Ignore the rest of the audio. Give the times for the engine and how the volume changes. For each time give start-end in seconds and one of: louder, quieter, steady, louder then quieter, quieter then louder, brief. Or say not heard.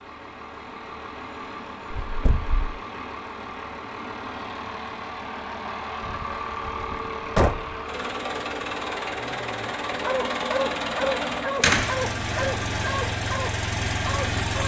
0.0-14.6 louder.